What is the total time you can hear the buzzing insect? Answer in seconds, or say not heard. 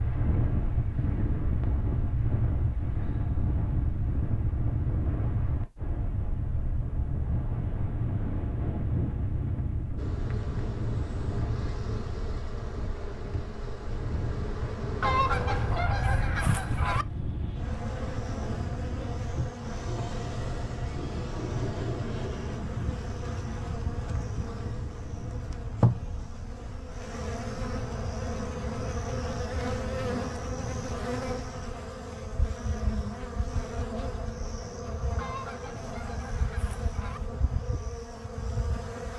29 s.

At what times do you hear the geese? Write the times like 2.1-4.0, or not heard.
15.0-17.1, 35.1-37.2.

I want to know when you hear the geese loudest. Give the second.
15 s.